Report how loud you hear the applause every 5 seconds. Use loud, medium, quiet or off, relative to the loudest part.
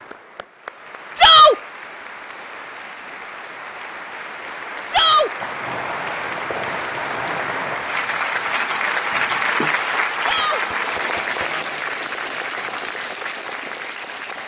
medium, loud, loud.